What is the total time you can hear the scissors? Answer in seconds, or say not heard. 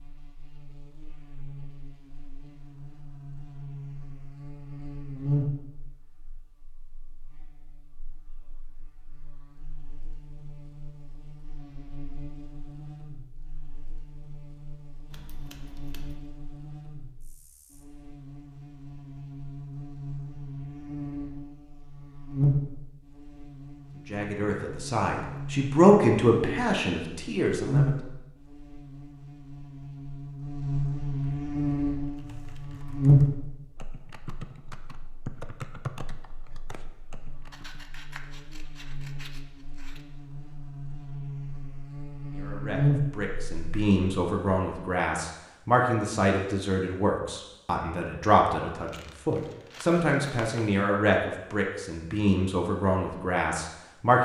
4 s.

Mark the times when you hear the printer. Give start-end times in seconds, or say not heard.
not heard.